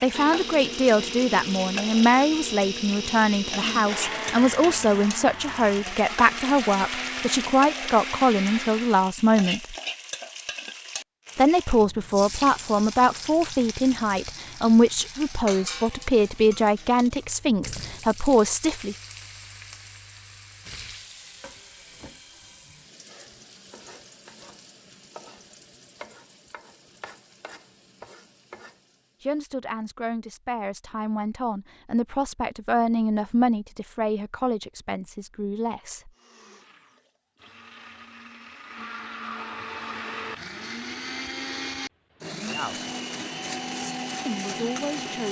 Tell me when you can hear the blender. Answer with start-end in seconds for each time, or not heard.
0.0-9.2, 36.1-45.2.